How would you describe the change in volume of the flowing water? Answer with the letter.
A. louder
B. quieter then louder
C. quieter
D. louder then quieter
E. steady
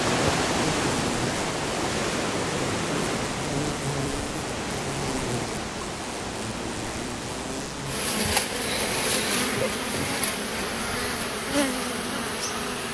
C.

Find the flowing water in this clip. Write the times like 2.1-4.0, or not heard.
0.0-9.6.